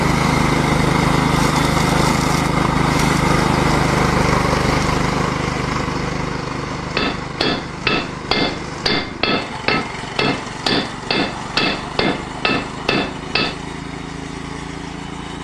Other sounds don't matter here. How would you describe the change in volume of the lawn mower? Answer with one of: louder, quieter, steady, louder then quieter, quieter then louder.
quieter.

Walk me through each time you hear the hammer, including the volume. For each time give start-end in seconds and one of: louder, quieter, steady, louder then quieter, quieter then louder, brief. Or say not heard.
6.8-13.6 steady.